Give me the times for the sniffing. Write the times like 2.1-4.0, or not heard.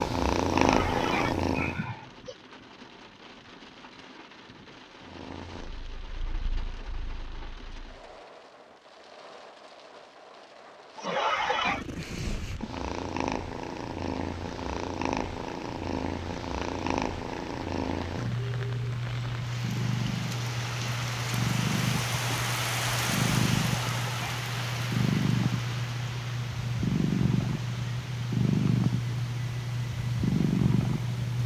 0.5-2.4, 10.9-11.8, 23.6-24.4.